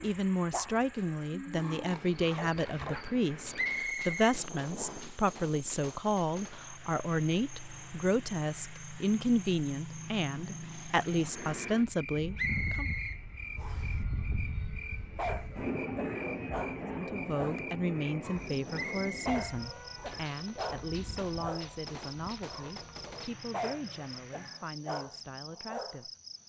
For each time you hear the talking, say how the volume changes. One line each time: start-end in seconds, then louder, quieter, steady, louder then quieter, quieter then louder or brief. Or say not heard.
0.0-12.9 steady
16.9-26.1 quieter.